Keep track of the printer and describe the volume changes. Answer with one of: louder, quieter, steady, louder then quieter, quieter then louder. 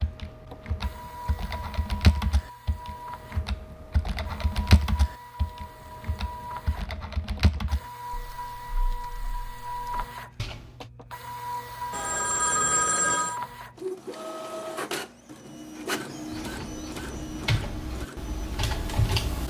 louder.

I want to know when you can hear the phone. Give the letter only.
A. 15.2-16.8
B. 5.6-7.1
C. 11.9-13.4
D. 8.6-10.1
C.